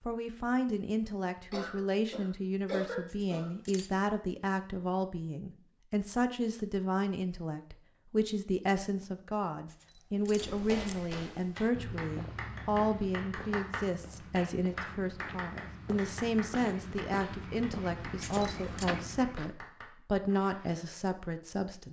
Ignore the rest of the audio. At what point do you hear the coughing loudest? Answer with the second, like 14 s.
3 s.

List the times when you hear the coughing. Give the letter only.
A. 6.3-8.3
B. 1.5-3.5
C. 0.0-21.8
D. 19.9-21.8
B.